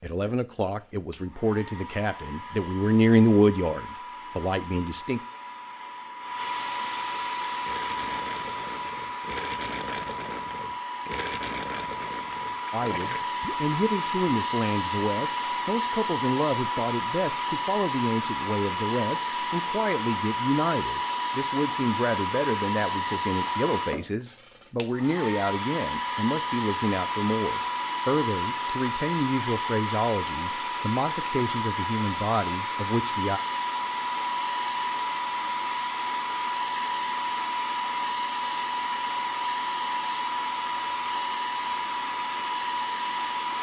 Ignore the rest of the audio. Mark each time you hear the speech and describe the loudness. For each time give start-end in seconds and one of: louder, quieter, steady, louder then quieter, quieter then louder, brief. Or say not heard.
0.0-5.2 louder then quieter
12.7-33.4 steady.